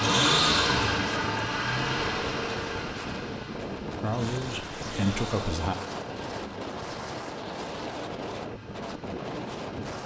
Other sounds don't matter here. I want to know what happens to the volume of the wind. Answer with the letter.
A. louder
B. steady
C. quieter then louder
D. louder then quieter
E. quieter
B.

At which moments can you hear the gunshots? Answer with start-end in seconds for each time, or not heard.
not heard.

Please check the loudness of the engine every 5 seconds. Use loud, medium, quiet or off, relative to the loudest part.
loud, quiet.